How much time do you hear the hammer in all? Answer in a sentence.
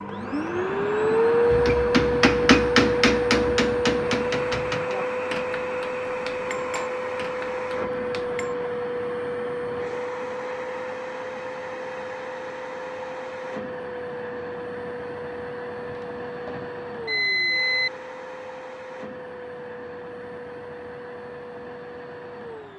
The hammer can be heard for 7 seconds in total.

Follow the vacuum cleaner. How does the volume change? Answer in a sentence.
The loudness of the vacuum cleaner goes down.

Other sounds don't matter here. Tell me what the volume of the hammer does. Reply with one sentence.
The loudness of the hammer goes down.